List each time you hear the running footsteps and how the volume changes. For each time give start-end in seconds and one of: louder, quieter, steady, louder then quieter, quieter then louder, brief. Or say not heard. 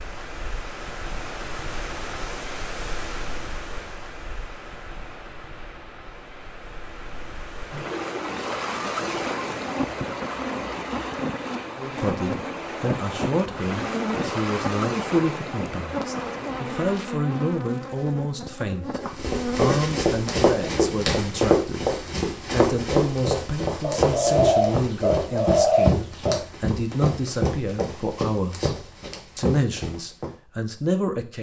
18.9-30.3 quieter.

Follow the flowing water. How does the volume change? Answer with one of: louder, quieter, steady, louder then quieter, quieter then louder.
quieter then louder.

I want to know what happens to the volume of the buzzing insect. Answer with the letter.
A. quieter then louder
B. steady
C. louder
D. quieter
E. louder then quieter
B.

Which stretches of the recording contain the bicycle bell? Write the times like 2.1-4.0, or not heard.
not heard.